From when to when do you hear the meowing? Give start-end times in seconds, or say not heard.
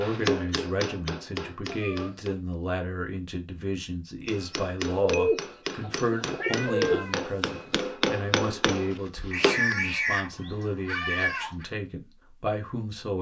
1.6-2.1, 6.4-7.2, 9.3-11.7.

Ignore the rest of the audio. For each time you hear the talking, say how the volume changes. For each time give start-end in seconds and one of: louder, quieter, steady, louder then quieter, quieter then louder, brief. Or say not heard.
0.0-13.1 steady.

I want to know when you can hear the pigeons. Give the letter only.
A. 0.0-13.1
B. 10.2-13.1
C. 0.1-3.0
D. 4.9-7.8
D.